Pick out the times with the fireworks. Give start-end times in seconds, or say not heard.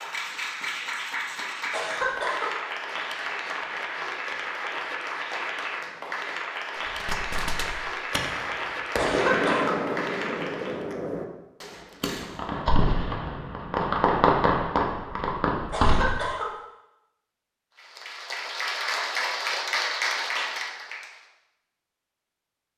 6.8-16.1.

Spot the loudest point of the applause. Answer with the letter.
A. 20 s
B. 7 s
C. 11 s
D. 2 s
A.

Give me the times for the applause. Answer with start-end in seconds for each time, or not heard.
0.0-10.8, 17.8-21.2.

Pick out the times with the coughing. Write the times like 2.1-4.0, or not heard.
1.7-2.5, 8.9-9.8, 15.7-16.5.